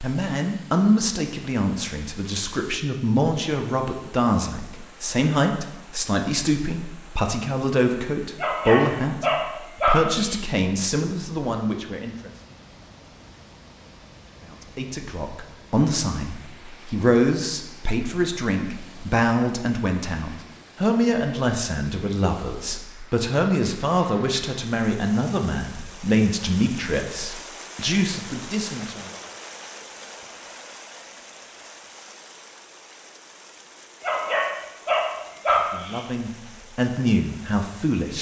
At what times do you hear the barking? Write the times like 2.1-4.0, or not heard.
8.4-10.4, 34.0-36.0.